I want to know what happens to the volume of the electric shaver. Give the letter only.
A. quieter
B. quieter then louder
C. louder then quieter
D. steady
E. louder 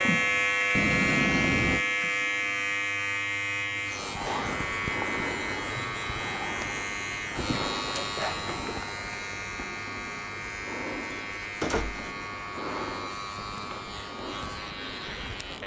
A.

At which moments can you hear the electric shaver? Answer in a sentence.
You can hear the electric shaver from 0.0 to 15.6 s.